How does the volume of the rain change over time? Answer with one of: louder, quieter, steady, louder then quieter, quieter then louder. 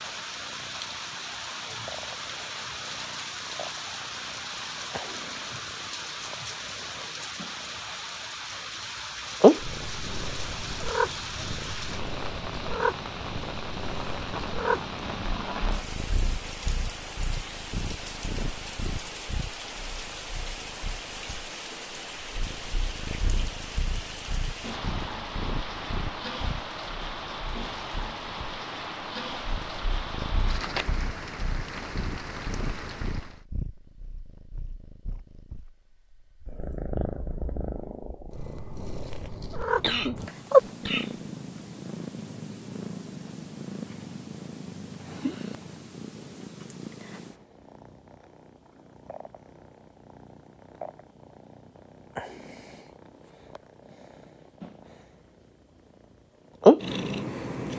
steady.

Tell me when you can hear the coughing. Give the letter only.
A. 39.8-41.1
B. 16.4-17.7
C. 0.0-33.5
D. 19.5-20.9
A.